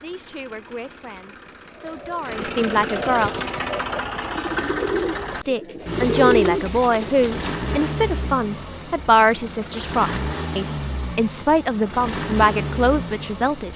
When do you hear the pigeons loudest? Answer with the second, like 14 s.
6 s.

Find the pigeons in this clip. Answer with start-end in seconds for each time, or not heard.
1.8-7.5.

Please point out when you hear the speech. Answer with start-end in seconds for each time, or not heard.
0.0-3.3, 5.3-13.7.